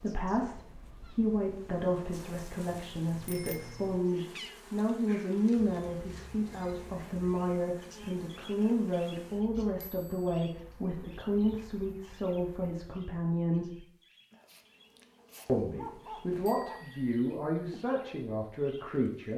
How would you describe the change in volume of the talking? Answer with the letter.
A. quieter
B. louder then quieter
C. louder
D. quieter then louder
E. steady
E.